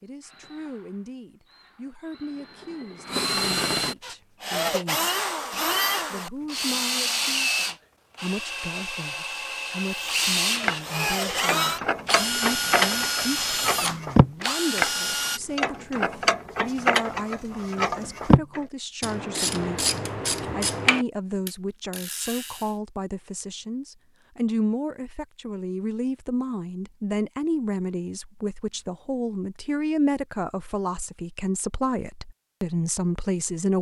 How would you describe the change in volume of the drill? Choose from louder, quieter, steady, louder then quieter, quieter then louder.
louder.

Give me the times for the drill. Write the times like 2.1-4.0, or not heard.
0.0-15.4.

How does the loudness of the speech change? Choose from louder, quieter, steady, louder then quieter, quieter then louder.
louder.